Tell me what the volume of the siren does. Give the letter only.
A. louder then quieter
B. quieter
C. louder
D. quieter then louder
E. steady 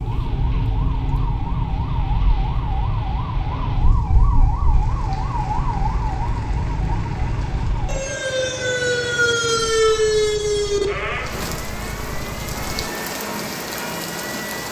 A.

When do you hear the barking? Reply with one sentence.
You can't hear the barking here.